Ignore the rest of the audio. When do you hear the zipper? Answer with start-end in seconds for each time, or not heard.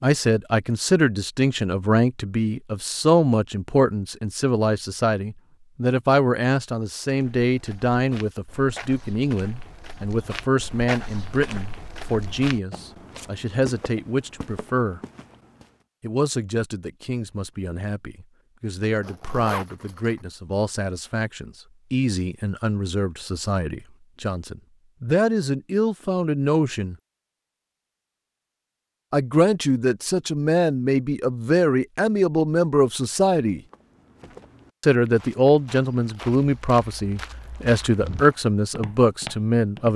18.8-20.2.